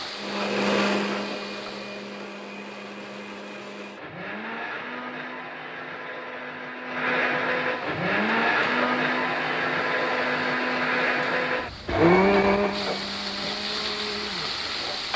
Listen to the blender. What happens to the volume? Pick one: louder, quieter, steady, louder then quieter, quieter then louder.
quieter then louder.